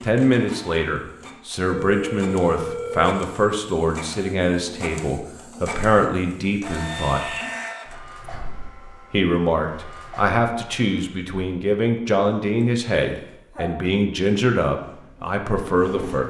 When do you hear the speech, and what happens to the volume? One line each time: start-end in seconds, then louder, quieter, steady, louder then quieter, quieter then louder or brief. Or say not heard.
0.0-7.3 steady
9.1-16.2 steady.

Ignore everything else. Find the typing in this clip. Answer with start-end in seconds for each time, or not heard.
not heard.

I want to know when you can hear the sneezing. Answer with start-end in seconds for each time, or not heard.
13.1-13.8.